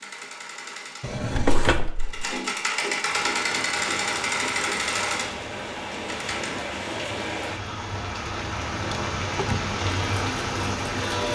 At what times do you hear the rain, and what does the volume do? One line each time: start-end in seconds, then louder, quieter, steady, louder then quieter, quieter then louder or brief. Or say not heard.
3.0-11.3 louder.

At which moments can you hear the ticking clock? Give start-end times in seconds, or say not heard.
not heard.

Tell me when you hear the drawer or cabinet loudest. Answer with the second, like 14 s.
2 s.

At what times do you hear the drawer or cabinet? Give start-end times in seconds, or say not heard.
1.0-2.4, 8.7-9.7.